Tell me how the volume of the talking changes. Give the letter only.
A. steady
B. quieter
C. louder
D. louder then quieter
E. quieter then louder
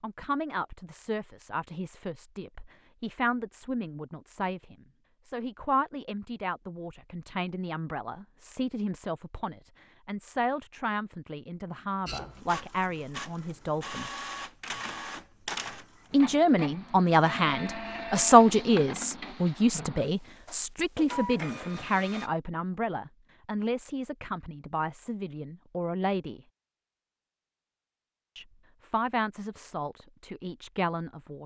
D.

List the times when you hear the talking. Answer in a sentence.
The talking can be heard from 0.0 to 14.1 s, from 16.1 to 26.4 s and from 28.4 to 31.4 s.